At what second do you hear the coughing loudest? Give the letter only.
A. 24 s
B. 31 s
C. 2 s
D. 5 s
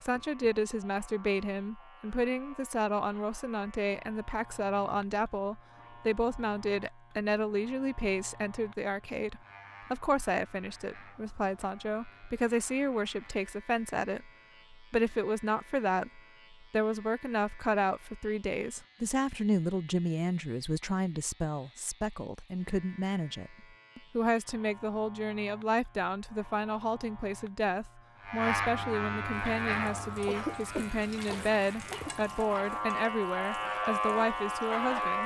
B.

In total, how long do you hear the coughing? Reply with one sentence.
The coughing can be heard for 2 seconds in total.